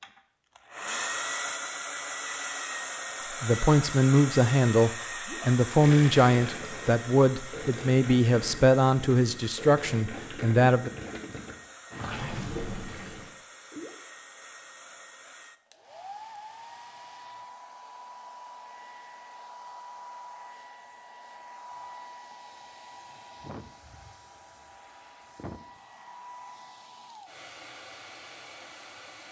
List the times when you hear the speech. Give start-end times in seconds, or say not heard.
3.3-10.9.